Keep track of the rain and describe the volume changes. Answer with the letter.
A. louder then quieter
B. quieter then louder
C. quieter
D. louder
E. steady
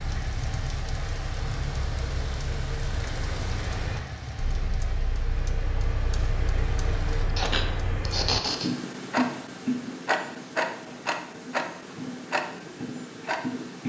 C.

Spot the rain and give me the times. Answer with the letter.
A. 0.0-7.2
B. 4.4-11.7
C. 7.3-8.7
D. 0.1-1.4
A.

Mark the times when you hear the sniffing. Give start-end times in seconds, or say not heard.
7.3-8.7.